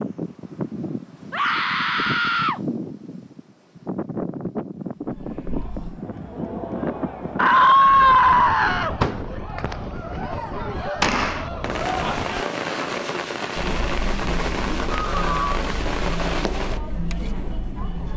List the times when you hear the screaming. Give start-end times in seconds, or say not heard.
1.3-2.6, 7.3-9.3, 15.1-15.6.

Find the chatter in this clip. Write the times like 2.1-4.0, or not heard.
5.0-18.1.